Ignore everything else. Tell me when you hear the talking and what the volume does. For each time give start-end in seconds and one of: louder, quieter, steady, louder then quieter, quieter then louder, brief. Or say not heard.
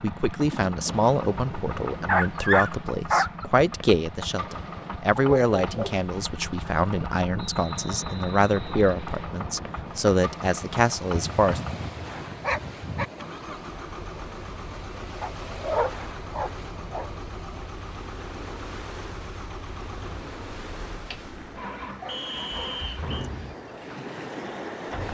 0.0-11.6 steady.